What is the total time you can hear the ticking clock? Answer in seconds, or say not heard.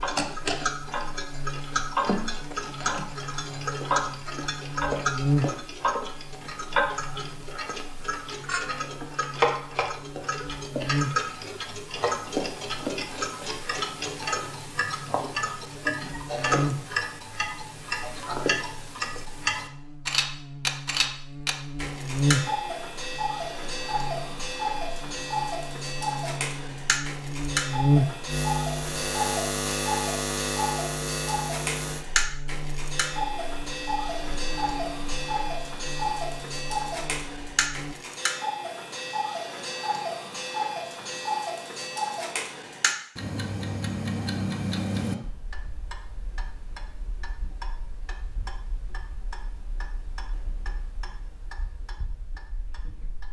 53 s.